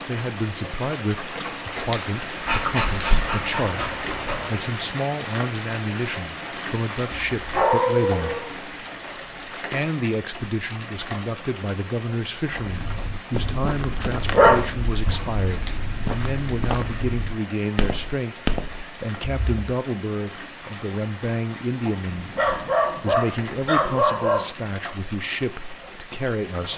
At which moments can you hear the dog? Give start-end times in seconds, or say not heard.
2.5-4.5, 7.3-8.5, 14.3-15.3, 22.1-24.4.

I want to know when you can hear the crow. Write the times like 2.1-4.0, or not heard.
not heard.